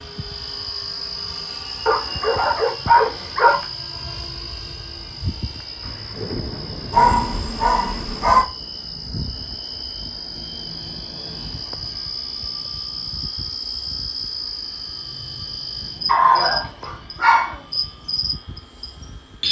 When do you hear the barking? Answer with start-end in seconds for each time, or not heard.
1.9-3.6, 6.9-8.4, 16.1-17.6.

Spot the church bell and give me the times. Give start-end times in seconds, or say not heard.
not heard.